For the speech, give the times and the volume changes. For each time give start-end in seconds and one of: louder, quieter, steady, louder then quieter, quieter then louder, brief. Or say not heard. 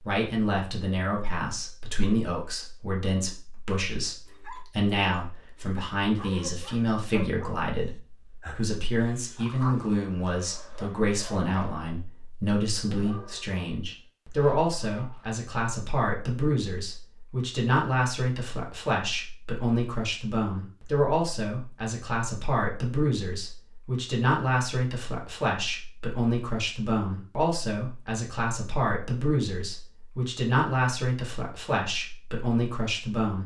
0.0-33.4 steady.